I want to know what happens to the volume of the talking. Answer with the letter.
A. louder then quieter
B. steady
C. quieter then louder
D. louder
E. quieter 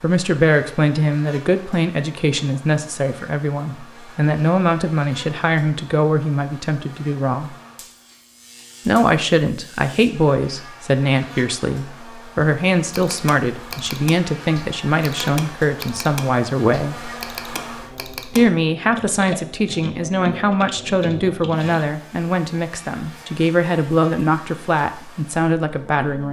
B.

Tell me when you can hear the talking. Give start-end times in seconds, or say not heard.
0.0-7.5, 8.8-17.1, 18.4-26.2.